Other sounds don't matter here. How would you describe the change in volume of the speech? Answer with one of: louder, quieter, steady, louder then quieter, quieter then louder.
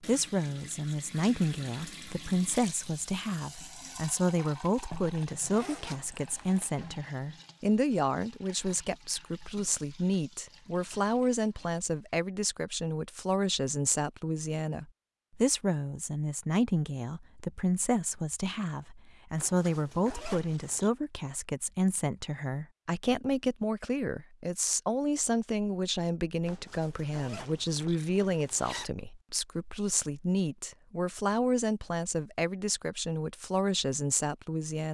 steady.